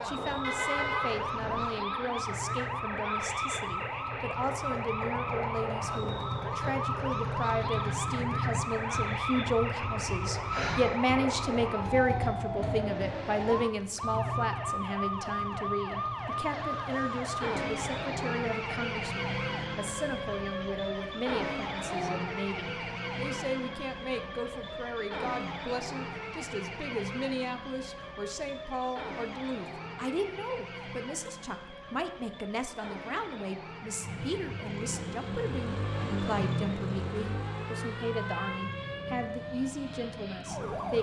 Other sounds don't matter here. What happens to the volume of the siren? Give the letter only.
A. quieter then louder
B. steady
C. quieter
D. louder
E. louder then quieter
C.